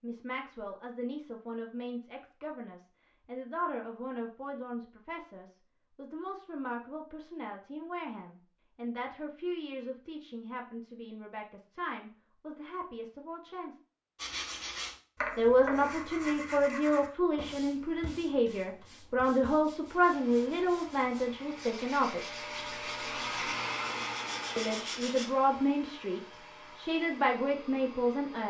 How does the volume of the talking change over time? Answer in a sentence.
The loudness of the talking goes up.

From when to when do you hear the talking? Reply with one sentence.
You can hear the talking from 0.0 to 13.8 s, from 15.3 to 22.4 s and from 24.6 to 28.4 s.